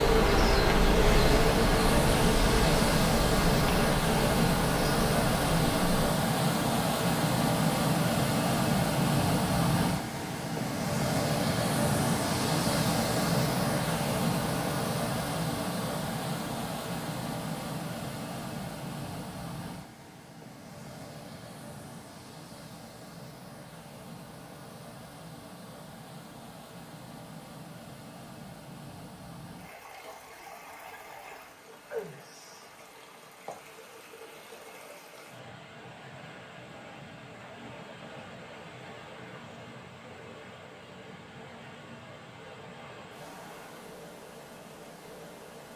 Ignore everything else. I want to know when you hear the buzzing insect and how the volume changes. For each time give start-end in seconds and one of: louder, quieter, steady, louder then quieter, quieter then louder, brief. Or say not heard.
0.0-5.8 quieter.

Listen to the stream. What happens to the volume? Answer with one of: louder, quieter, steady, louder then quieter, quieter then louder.
quieter.